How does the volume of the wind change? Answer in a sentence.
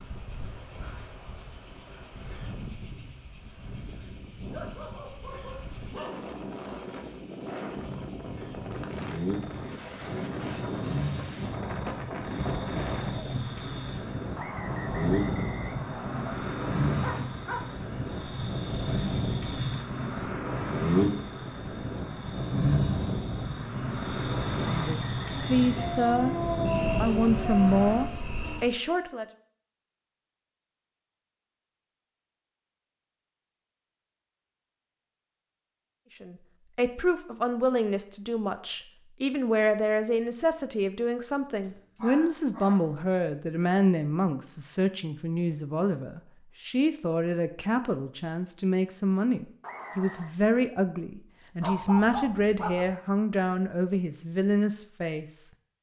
The volume of the wind goes up.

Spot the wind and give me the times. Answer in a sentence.
You can hear the wind from 0.0 to 28.1 s.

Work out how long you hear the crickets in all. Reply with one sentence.
You can hear the crickets for 29 seconds altogether.